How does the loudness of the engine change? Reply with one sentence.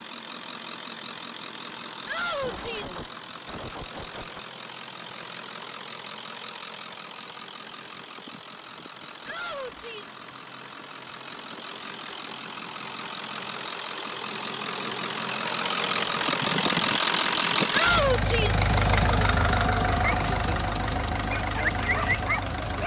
The loudness of the engine goes up.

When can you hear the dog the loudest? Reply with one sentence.
The loudest moment of the dog is at 22 seconds.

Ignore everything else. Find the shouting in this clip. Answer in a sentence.
You can hear the shouting from 2.0 to 2.9 s, from 9.2 to 10.2 s and from 17.7 to 18.6 s.